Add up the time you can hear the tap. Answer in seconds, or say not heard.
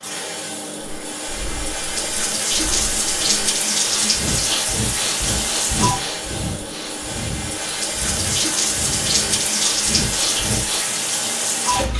12 s.